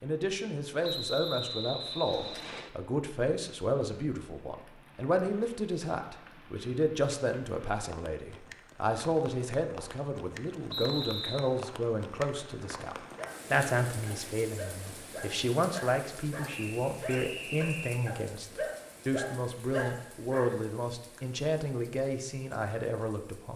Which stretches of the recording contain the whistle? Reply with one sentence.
The whistle can be heard from 0.8 to 2.7 s, from 10.7 to 11.5 s and from 16.4 to 18.1 s.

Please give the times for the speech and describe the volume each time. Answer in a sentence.
You can hear the speech from 0.0 to 23.5 s, at a steady volume.